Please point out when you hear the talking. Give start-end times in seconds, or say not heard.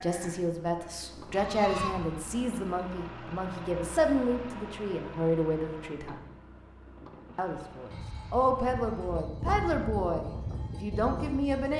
0.0-6.2, 7.3-11.7.